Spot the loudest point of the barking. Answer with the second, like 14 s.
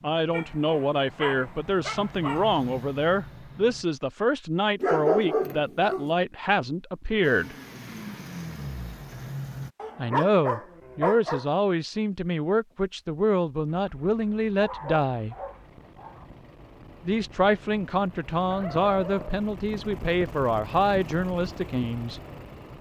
5 s.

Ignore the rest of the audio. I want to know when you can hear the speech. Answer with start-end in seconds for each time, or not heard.
0.0-7.5, 9.9-15.3, 17.1-22.2.